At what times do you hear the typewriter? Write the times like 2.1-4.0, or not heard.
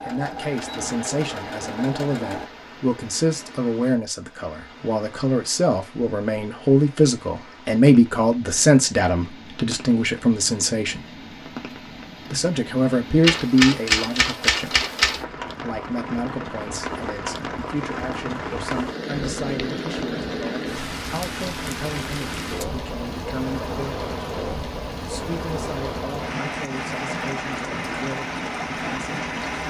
13.2-15.2.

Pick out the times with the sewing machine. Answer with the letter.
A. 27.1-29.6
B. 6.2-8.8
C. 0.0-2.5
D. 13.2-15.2
C.